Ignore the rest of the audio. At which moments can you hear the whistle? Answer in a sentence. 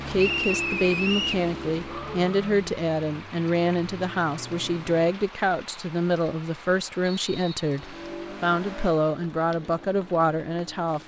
The whistle can be heard from 0.1 to 1.4 s and from 7.2 to 8.2 s.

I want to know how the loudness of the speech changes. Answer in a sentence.
The loudness of the speech stays about the same.